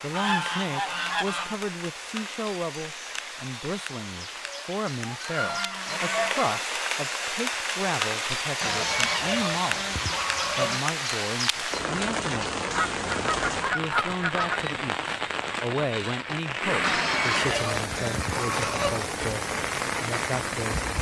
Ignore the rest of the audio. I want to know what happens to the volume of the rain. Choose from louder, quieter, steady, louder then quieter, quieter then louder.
louder.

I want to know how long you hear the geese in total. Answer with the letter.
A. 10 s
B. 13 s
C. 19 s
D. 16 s
A.